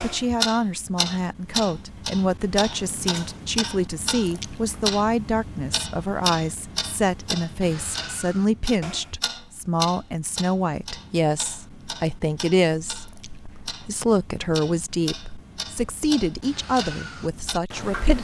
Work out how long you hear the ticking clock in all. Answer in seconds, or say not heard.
18 s.